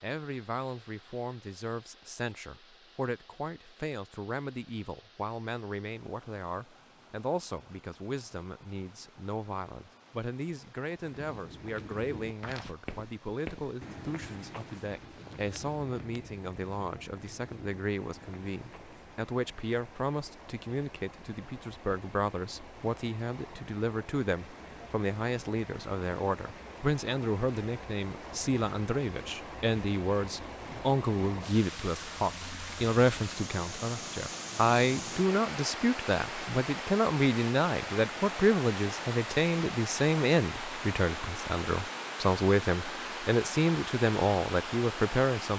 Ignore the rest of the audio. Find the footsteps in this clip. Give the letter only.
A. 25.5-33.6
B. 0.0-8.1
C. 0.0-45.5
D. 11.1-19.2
D.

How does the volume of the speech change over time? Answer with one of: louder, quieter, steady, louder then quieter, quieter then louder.
louder.